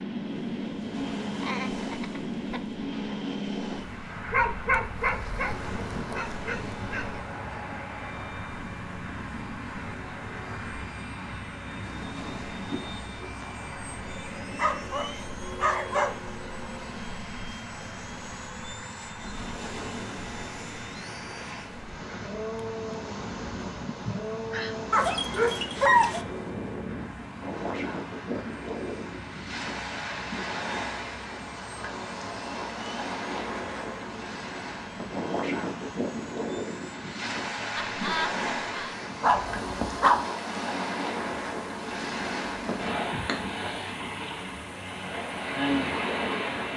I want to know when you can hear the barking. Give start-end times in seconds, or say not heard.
4.3-7.2, 14.6-16.3, 24.9-26.2, 39.2-40.2.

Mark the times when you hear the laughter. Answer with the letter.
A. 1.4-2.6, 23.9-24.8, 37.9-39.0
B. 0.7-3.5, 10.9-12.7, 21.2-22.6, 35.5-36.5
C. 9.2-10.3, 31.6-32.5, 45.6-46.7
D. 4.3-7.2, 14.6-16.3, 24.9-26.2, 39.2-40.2
A.